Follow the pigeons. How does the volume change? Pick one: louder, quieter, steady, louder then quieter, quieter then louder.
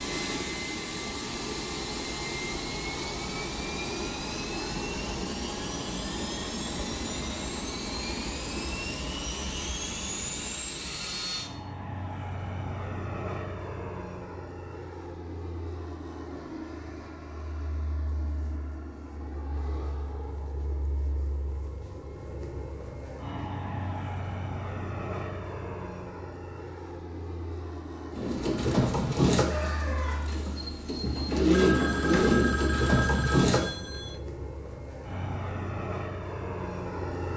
quieter then louder.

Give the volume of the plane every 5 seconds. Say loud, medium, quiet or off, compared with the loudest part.
loud, loud, loud, medium, medium, medium, medium, loud.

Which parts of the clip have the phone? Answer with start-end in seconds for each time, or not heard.
31.5-34.2.